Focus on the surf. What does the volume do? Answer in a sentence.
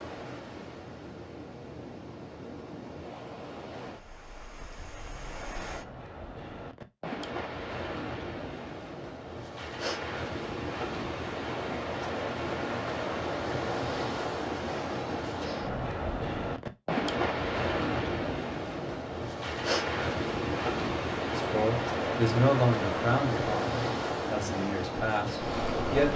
The loudness of the surf goes up.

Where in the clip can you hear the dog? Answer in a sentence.
You can't hear the dog here.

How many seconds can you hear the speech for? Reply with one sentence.
The speech can be heard for 5 seconds in total.